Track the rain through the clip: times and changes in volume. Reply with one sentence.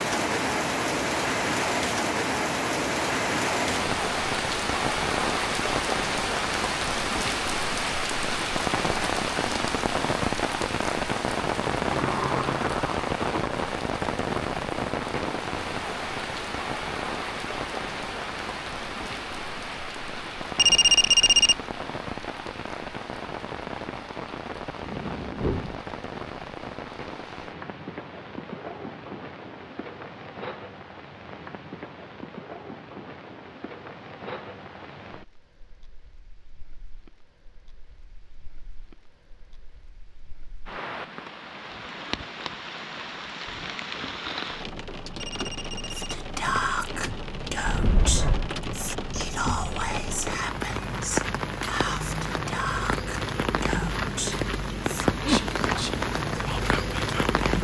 The rain can be heard from 0.0 to 57.6 s, getting quieter then louder.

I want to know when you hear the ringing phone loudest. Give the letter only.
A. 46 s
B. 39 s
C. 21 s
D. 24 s
C.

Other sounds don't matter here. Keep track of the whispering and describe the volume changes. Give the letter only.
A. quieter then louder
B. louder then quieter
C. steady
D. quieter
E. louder
D.